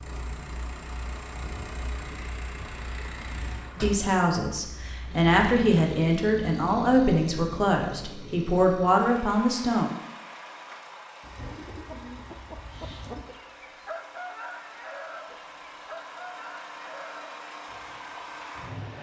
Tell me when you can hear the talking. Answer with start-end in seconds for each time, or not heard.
3.8-9.9.